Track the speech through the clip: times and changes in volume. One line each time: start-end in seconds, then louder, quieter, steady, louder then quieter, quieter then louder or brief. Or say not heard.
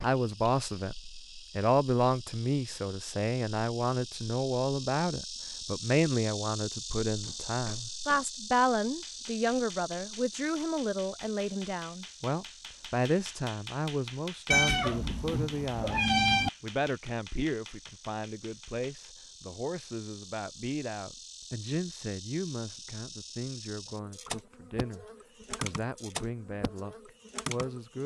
0.0-0.9 brief
1.6-28.0 quieter.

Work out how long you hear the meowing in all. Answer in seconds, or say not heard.
2 s.